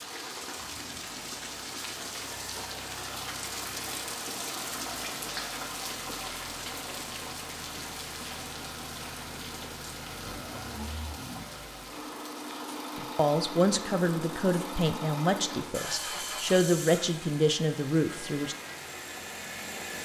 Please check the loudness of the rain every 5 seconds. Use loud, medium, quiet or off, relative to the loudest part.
loud, loud, medium, medium.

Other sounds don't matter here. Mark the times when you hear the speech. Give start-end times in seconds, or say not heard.
12.9-18.6.